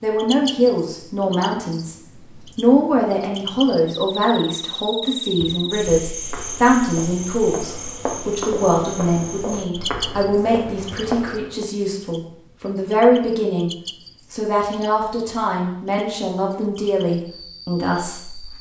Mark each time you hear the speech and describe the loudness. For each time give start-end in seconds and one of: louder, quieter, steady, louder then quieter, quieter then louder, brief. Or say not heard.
0.0-13.7 steady
14.3-18.5 steady.